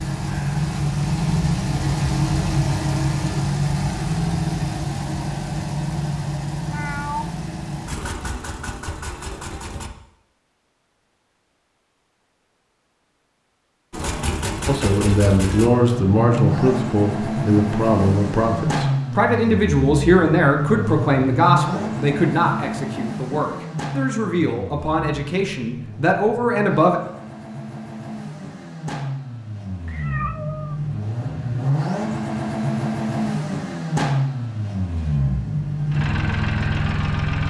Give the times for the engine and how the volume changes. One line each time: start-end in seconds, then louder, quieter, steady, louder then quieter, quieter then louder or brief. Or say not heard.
0.0-9.9 quieter
13.9-37.4 quieter then louder.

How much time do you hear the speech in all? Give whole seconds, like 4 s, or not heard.
12 s.